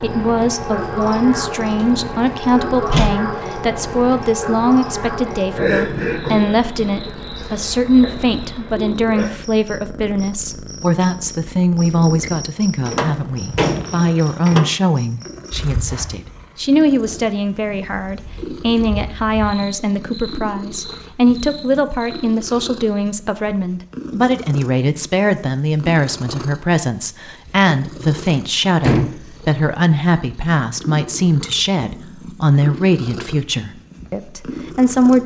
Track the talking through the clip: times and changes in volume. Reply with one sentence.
You can hear the talking from 0.0 to 35.2 s, at a steady volume.